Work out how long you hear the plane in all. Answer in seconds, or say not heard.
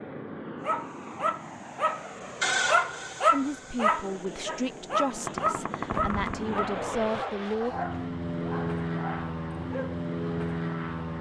11 s.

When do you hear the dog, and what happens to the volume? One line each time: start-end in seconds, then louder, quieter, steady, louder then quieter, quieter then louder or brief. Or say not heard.
0.6-10.1 quieter.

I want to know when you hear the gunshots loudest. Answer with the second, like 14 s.
6 s.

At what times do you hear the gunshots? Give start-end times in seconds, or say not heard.
5.2-7.2.